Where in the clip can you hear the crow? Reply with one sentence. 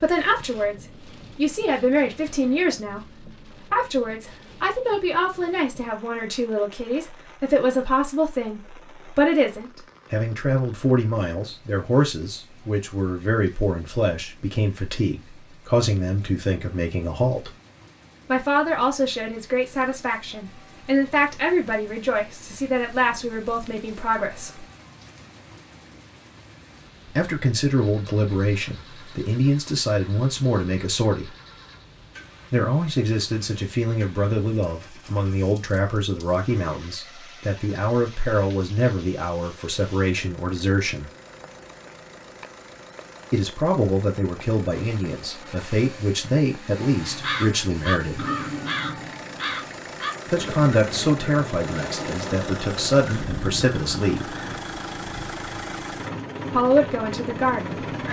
You can hear the crow from 46.8 to 54.6 s.